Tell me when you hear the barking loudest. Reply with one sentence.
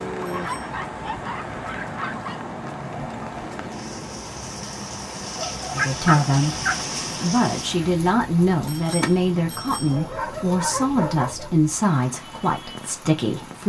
The volume of the barking peaks at 6 seconds.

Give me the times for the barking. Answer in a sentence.
You can hear the barking from 0.1 to 2.4 s, from 5.3 to 6.8 s and from 9.7 to 11.5 s.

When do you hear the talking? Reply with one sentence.
The talking can be heard from 5.7 to 13.6 s.